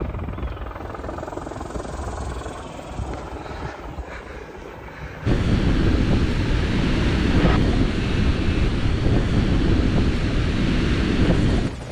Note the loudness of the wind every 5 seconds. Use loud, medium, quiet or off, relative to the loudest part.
off, loud, loud.